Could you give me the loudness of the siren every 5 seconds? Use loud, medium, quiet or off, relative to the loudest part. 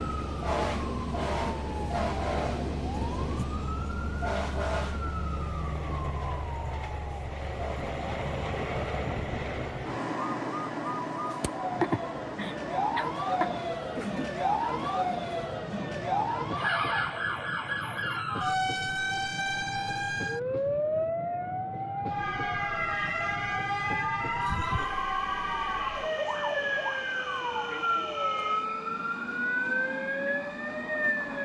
loud, medium, loud, loud, loud, loud, loud.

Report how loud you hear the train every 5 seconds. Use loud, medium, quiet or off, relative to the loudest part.
medium, loud, loud, medium, medium, medium, medium.